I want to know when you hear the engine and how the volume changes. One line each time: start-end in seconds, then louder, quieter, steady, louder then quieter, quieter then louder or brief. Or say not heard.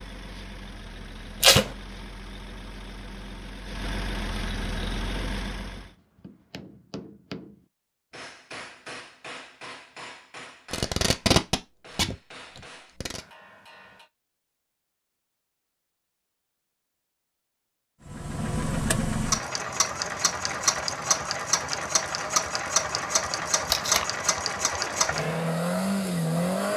0.0-5.9 louder
18.1-26.7 steady.